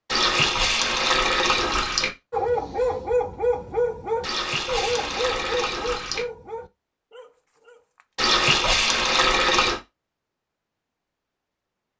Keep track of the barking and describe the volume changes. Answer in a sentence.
The loudness of the barking goes down.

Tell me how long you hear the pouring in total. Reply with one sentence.
The pouring can be heard for 6 seconds in total.